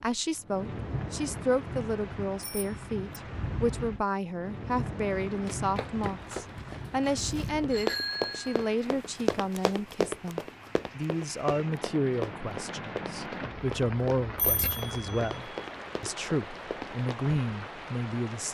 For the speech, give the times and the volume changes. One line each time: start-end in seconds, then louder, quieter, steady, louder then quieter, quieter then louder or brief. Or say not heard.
0.0-18.5 steady.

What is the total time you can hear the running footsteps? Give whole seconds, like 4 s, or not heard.
12 s.